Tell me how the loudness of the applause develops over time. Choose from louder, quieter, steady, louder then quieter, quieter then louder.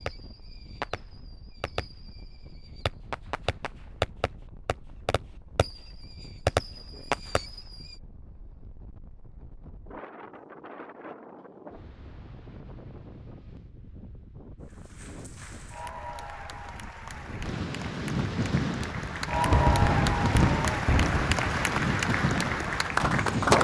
louder.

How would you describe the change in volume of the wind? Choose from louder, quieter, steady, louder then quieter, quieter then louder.
louder.